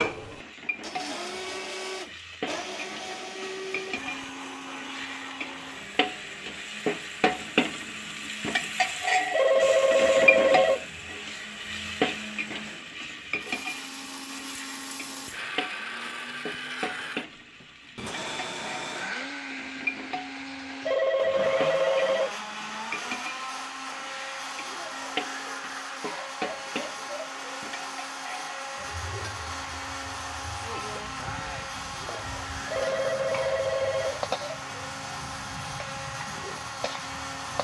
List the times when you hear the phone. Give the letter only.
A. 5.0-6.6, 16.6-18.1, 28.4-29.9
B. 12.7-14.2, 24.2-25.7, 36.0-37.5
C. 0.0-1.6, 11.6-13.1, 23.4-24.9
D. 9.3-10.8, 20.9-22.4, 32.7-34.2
D.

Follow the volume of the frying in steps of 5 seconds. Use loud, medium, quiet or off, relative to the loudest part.
medium, loud, loud, medium, medium, medium, medium, quiet.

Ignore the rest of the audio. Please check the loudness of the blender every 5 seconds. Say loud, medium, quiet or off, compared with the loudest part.
loud, medium, medium, loud, loud, loud, loud, loud.